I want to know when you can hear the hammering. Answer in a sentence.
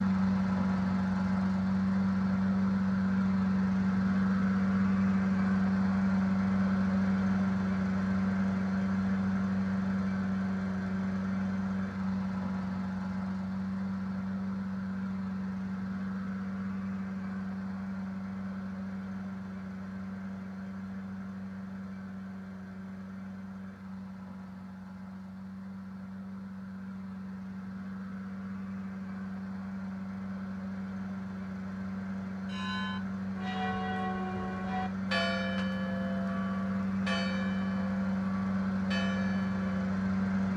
You can't hear the hammering here.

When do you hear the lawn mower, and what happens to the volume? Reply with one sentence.
The lawn mower can be heard from 0.0 to 40.5 s, getting quieter then louder.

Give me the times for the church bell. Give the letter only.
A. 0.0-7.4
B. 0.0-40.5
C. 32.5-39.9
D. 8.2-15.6
C.